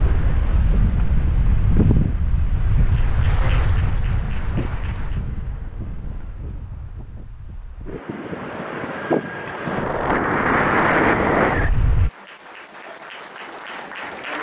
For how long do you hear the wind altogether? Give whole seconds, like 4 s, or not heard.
12 s.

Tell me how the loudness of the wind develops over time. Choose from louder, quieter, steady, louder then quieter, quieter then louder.
quieter then louder.